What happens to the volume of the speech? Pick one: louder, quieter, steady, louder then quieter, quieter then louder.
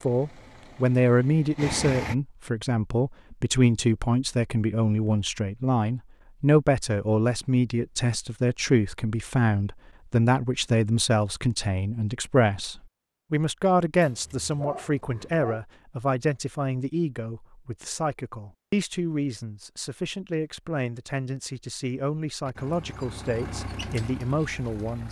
quieter.